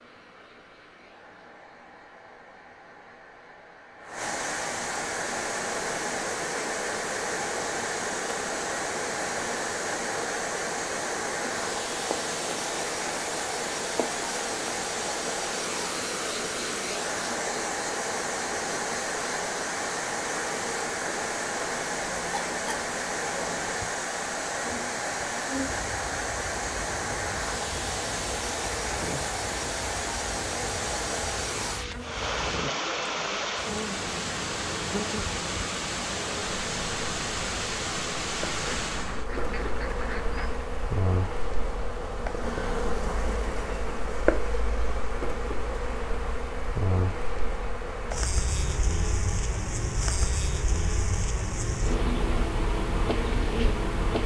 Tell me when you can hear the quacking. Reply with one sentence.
The quacking can be heard from 38.5 to 40.6 s.